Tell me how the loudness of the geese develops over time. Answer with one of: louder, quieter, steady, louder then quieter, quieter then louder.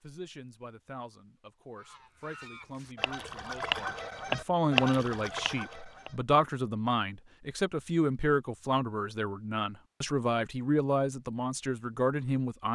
louder then quieter.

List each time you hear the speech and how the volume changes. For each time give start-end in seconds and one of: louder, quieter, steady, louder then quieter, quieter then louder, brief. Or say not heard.
0.0-12.7 louder.